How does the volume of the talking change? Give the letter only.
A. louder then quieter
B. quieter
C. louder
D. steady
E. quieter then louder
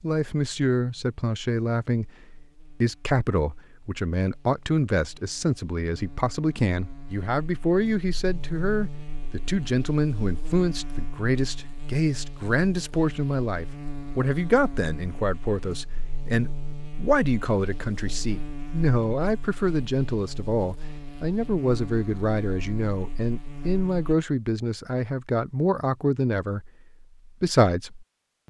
D.